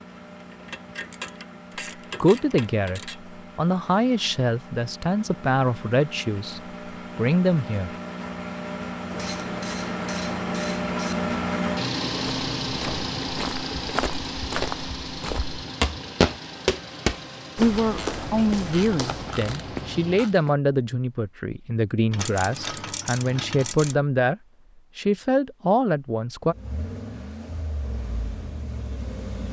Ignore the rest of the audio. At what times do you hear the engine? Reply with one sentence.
You can hear the engine from 0.0 to 20.6 s and from 26.4 to 29.4 s.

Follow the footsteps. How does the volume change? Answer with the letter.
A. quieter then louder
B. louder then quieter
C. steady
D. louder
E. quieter
B.